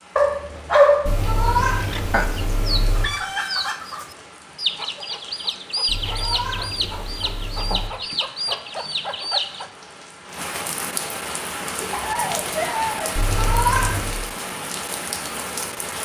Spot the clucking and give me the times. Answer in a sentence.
The clucking can be heard from 1.8 to 9.7 s.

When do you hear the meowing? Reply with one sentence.
You can hear the meowing from 1.1 to 3.0 s, from 5.8 to 7.9 s and from 13.2 to 14.2 s.